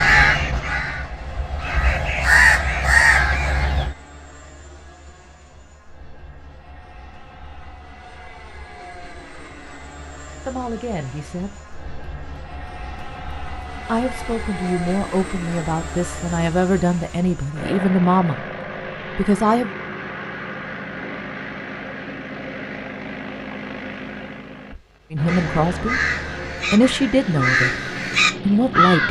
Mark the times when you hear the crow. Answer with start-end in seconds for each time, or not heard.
0.0-4.0, 25.2-29.0.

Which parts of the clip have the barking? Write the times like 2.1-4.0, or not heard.
not heard.